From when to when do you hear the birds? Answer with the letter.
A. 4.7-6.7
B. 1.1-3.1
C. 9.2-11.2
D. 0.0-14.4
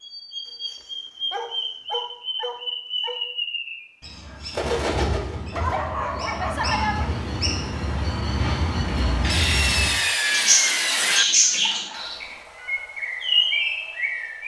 D.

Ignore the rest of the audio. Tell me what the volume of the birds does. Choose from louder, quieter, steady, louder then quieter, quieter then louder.
louder.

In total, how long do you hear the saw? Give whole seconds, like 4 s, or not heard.
2 s.